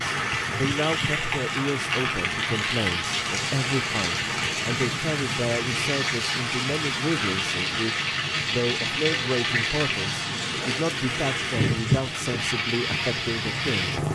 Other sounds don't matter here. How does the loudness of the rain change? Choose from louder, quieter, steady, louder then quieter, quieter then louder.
steady.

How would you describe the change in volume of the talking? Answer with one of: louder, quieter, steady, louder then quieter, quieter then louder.
steady.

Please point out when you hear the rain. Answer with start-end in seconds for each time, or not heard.
0.0-14.1.